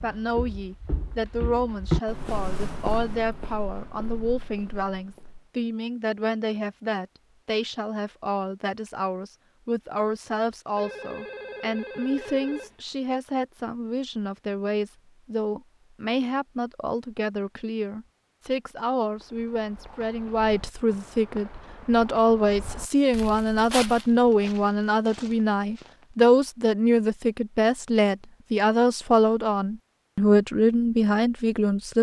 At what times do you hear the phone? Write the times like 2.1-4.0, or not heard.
10.8-12.8.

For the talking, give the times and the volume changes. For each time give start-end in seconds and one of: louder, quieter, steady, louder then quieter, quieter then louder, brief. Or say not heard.
0.0-31.9 louder.